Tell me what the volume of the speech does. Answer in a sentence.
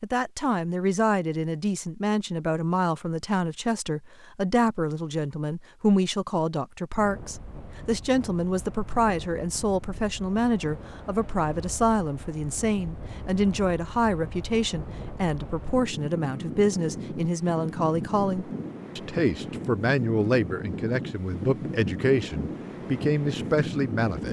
The volume of the speech stays about the same.